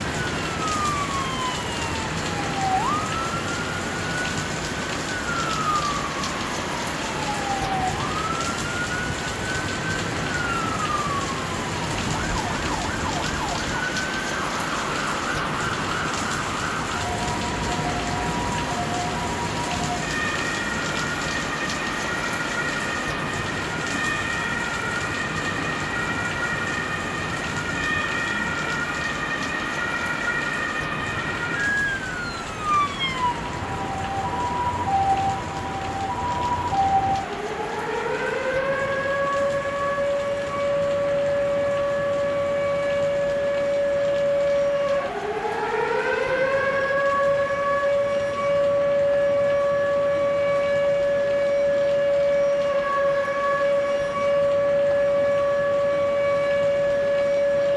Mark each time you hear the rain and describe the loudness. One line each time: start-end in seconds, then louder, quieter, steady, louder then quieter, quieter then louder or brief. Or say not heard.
0.0-57.7 quieter.